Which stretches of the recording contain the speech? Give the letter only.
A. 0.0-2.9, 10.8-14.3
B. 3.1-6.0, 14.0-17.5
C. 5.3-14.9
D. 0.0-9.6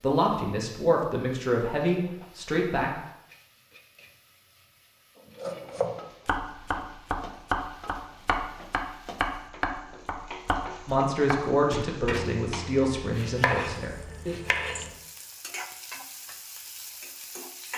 A.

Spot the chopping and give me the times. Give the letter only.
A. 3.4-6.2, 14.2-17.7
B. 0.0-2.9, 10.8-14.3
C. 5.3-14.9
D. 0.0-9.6
C.